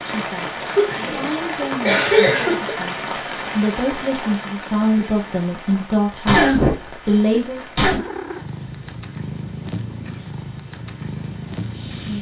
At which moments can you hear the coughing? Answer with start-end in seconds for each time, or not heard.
0.7-2.7, 6.2-8.0.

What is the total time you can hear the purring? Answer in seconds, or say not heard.
4 s.